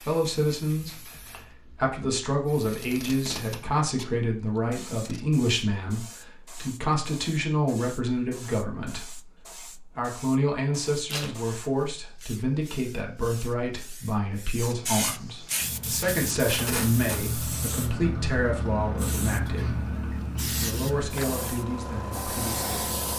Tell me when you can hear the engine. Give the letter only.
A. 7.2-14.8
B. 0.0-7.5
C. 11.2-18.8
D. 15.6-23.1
D.